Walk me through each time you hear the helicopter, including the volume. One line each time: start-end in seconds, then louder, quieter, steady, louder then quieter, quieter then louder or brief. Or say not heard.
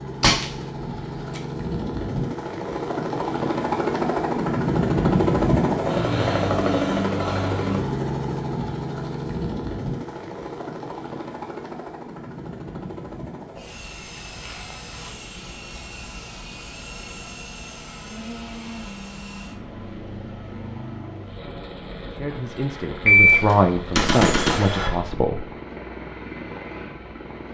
0.0-27.4 quieter.